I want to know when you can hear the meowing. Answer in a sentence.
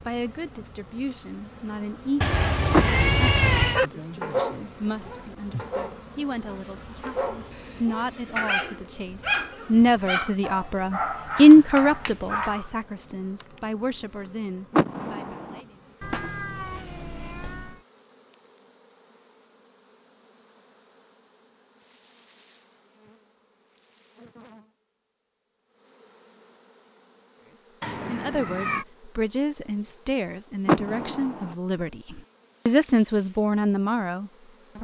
You can hear the meowing from 2.2 to 3.8 s, from 16.0 to 17.8 s and from 27.8 to 28.9 s.